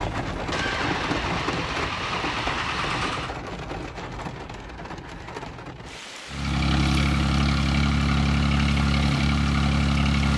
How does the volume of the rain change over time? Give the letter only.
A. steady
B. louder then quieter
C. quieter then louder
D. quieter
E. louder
D.